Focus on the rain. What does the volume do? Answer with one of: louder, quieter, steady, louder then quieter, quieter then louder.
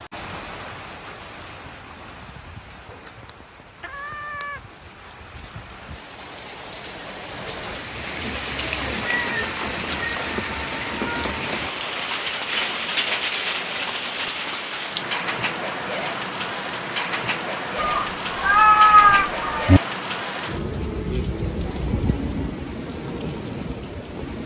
louder.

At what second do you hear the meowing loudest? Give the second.
19 s.